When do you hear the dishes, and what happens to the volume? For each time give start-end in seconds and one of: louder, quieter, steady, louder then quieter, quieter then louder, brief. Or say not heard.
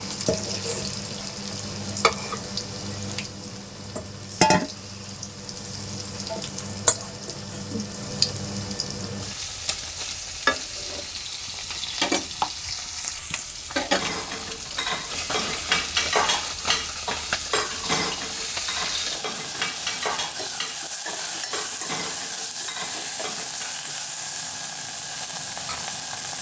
13.9-23.7 quieter.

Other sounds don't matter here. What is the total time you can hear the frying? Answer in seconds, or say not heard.
26 s.